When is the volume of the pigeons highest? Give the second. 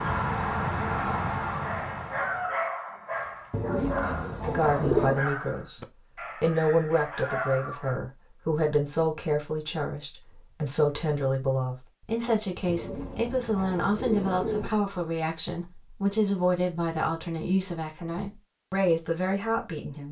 5 s.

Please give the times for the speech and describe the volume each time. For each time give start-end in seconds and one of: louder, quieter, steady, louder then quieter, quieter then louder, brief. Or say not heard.
4.5-20.0 steady.